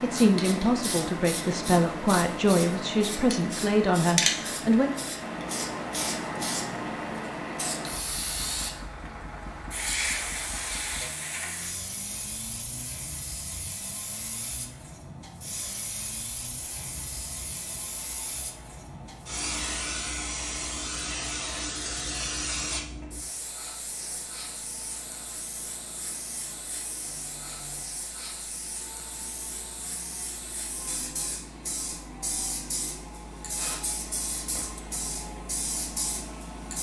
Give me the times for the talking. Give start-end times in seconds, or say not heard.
0.0-4.9.